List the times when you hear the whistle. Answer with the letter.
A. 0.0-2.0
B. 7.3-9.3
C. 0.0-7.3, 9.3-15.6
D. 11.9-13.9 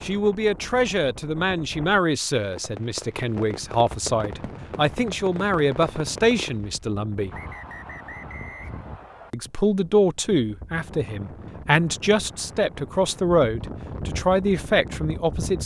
B.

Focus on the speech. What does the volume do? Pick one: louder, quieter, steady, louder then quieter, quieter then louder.
steady.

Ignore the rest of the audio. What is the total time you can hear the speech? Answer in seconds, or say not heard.
14 s.